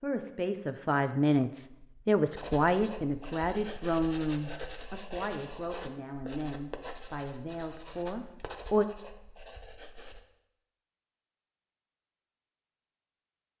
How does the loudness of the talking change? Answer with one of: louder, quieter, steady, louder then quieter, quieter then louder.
quieter.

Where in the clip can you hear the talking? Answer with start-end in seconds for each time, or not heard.
0.0-8.8.